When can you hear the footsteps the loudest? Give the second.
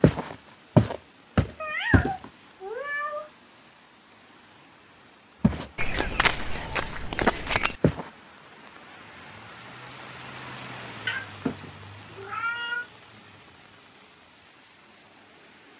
1 s.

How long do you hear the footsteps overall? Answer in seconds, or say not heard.
5 s.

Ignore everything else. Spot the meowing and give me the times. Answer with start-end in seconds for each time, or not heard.
1.6-3.3, 11.1-12.8.